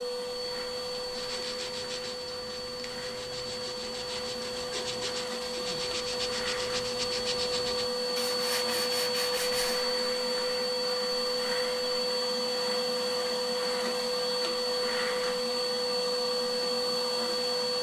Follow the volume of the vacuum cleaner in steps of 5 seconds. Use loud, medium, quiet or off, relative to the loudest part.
medium, loud, loud, loud.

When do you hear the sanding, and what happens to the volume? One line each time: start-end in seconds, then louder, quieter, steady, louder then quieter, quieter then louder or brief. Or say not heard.
0.1-9.8 louder.